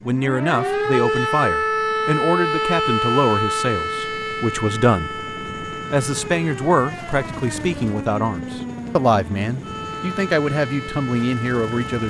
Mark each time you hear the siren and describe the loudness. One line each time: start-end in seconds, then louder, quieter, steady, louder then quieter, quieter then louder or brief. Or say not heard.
0.0-12.0 quieter.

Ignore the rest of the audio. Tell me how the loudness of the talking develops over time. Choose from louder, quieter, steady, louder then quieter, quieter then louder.
steady.